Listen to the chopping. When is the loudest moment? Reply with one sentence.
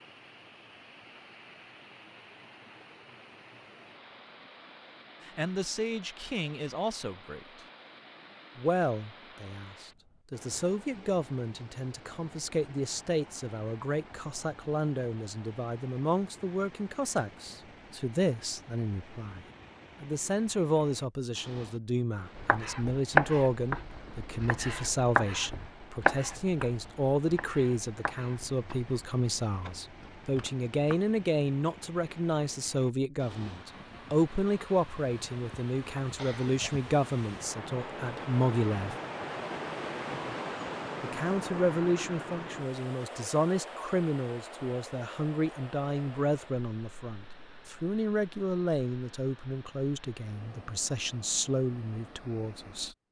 The volume of the chopping peaks at 23 seconds.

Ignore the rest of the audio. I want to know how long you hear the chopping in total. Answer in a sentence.
You can hear the chopping for 9 seconds altogether.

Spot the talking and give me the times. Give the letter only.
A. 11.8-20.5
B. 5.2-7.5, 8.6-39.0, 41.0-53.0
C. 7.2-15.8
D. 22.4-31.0
B.